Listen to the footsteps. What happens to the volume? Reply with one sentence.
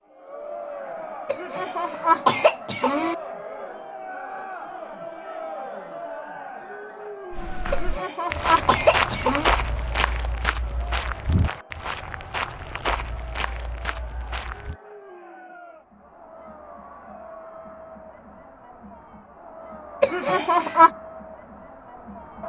The loudness of the footsteps goes down.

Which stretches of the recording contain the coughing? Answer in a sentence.
The coughing can be heard from 1.2 to 3.1 s, from 7.7 to 9.5 s and from 20.0 to 20.9 s.